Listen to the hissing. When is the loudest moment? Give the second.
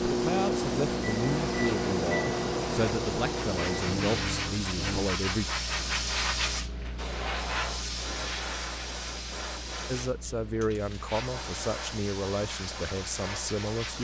6 s.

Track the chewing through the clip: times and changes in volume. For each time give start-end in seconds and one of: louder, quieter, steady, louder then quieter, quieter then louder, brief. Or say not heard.
not heard.